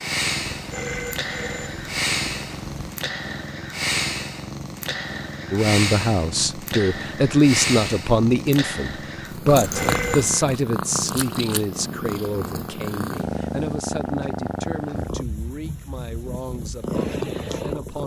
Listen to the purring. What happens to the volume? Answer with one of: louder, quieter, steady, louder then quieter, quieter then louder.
steady.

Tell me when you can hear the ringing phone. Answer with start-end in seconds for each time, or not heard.
0.5-3.0, 9.4-10.4.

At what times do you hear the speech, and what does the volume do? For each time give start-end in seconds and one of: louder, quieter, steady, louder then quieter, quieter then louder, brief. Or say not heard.
5.5-18.0 quieter.